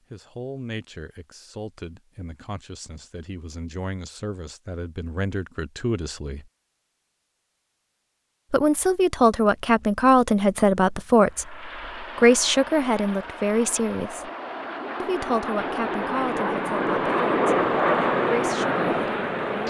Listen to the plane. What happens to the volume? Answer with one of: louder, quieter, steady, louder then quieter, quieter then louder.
louder.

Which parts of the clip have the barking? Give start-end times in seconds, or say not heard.
not heard.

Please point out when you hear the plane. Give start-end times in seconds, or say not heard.
11.2-19.6.